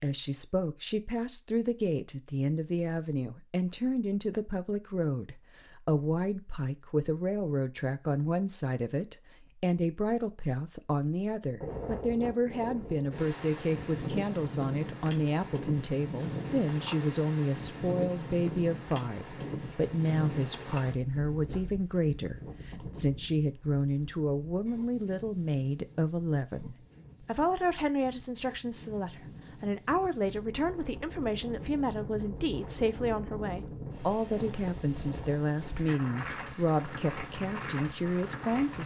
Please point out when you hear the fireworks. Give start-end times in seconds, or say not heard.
not heard.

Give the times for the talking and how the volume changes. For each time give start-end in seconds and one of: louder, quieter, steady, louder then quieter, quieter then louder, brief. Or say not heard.
0.0-38.8 steady.